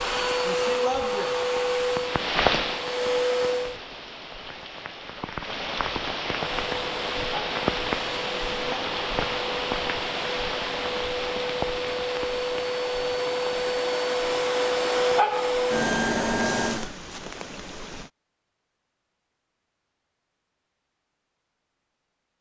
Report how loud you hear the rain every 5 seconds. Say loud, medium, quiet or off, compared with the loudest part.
loud, loud, loud, medium, off.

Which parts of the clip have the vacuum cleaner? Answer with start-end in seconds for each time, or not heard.
0.0-3.8, 6.5-16.9.